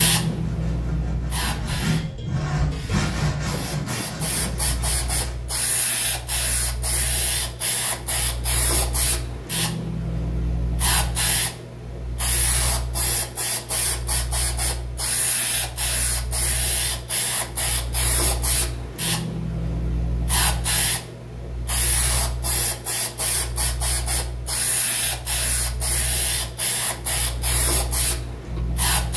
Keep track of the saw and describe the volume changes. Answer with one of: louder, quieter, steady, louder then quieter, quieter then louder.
louder then quieter.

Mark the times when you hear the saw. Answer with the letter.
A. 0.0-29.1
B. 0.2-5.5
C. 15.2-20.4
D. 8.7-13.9
B.